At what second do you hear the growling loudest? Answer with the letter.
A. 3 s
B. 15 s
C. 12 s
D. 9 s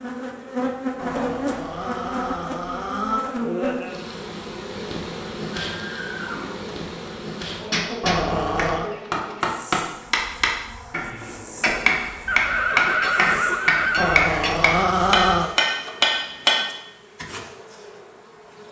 B.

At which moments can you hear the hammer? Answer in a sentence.
The hammer can be heard from 7.5 to 16.6 s.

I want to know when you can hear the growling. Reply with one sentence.
The growling can be heard from 1.0 to 3.2 s, from 8.0 to 8.9 s and from 13.9 to 15.5 s.